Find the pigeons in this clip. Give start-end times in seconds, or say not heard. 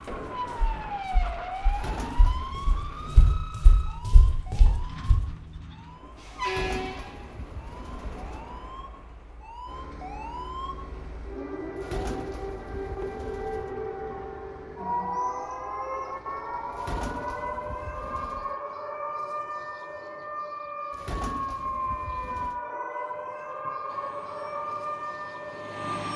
1.6-3.5, 6.4-8.6, 11.8-13.8, 16.7-18.6, 20.9-22.6.